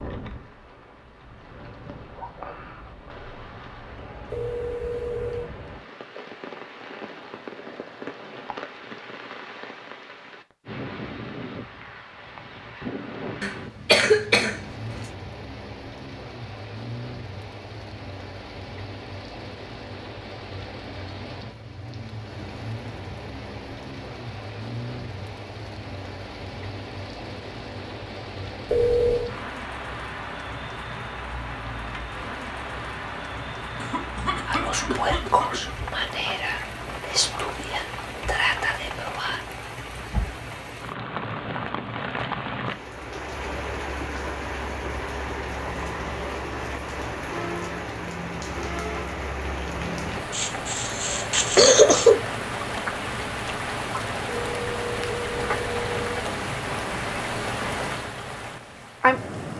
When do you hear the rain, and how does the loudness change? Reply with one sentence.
The rain can be heard from 0.0 to 59.5 s, getting louder.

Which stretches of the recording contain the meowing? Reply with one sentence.
The meowing can't be heard in this clip.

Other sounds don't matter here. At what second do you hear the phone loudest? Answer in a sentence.
The volume of the phone peaks at 29 seconds.